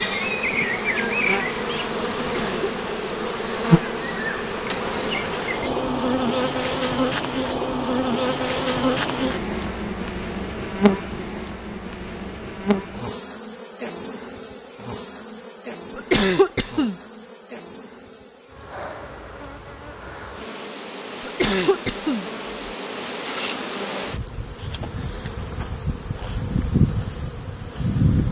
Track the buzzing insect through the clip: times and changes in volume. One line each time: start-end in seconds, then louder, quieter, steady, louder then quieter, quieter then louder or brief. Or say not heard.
0.0-28.2 quieter then louder.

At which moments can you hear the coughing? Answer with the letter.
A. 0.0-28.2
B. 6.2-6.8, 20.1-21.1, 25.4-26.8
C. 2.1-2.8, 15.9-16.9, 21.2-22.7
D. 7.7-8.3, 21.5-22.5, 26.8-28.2
C.